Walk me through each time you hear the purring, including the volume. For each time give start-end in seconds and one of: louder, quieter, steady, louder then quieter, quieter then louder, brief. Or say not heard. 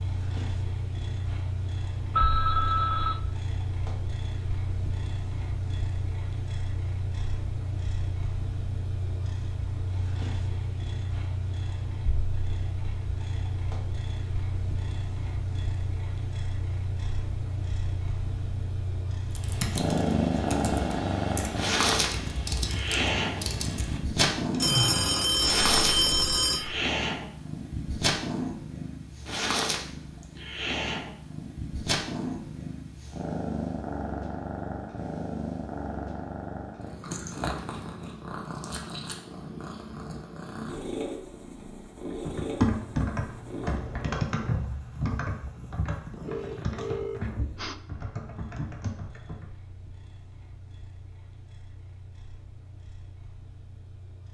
0.0-54.3 louder then quieter.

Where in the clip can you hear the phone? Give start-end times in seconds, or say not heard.
2.1-3.2, 24.6-26.7, 46.2-47.8.